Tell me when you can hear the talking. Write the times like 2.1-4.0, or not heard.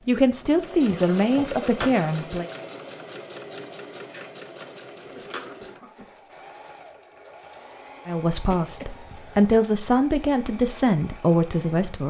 0.1-2.5, 8.1-12.0.